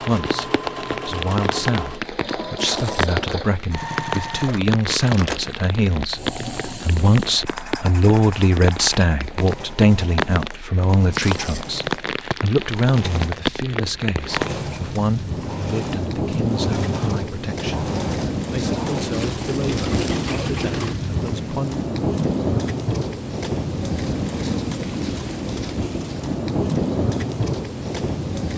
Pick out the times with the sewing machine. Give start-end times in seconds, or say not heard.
0.0-21.0.